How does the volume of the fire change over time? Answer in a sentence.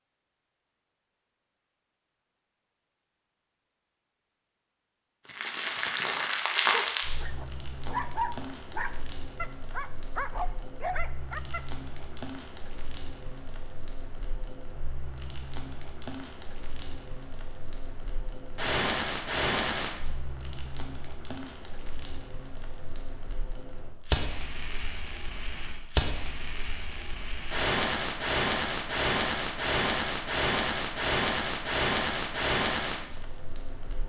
The volume of the fire goes down, then up.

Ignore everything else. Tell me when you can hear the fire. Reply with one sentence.
The fire can be heard from 5.2 to 34.0 s.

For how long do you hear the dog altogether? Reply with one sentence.
The dog can be heard for 5 seconds in total.